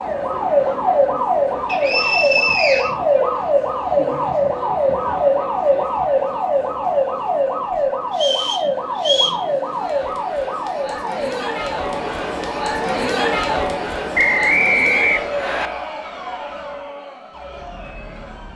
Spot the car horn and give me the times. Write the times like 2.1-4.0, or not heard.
not heard.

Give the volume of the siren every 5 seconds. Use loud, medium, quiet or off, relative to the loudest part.
loud, loud, medium, quiet.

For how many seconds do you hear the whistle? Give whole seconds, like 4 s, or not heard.
4 s.